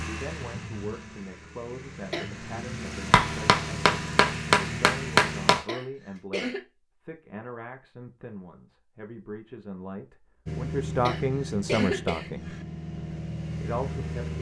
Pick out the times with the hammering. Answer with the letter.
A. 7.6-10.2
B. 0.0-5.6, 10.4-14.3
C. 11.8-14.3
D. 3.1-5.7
D.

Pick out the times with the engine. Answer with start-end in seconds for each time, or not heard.
0.0-5.6, 10.4-14.3.